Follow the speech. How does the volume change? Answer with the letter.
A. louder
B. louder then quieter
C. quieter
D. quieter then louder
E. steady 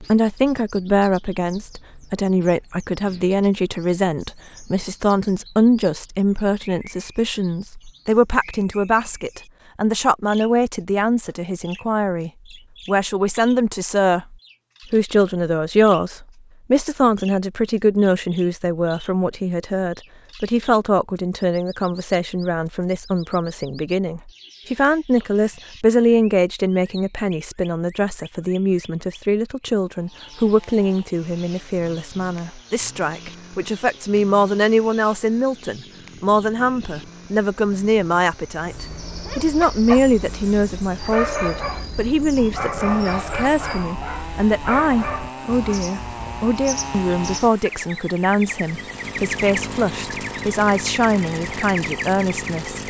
E.